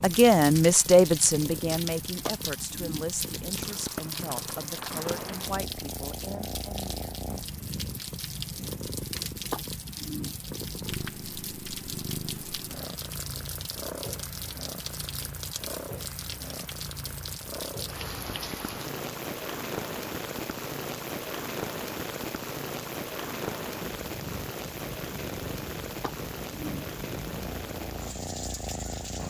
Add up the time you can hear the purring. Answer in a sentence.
The purring can be heard for 29 seconds in total.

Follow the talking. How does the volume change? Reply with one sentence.
The volume of the talking goes down.